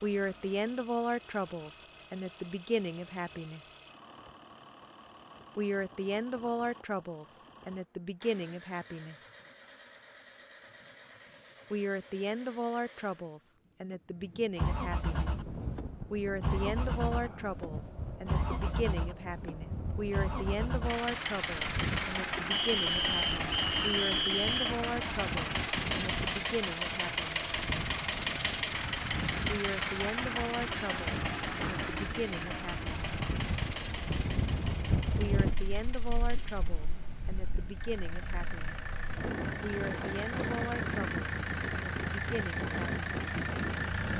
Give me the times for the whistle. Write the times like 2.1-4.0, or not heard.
22.5-24.8.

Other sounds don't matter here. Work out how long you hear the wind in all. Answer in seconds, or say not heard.
29 s.